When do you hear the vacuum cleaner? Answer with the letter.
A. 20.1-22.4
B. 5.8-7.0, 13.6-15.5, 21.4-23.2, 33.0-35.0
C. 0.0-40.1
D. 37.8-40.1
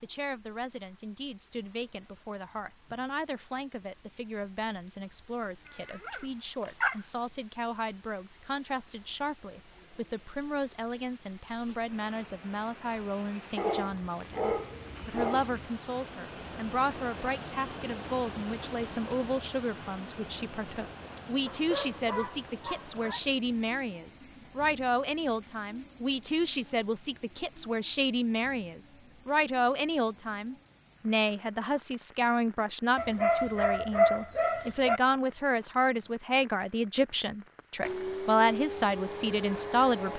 D.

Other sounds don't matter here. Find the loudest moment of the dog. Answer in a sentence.
The loudest moment of the dog is at 34 seconds.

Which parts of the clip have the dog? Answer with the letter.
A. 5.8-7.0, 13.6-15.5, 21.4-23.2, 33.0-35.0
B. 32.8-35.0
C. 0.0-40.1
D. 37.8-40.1
A.